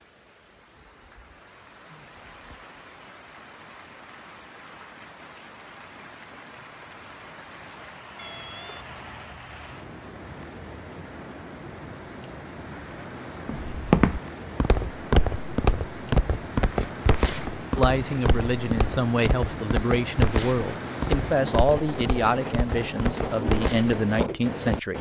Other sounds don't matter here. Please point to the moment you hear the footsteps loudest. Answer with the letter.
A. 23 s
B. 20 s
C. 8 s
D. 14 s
D.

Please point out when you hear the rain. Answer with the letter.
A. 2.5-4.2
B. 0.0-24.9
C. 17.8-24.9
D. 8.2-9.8
B.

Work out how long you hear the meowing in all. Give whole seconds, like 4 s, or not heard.
2 s.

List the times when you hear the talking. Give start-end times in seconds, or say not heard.
17.8-24.9.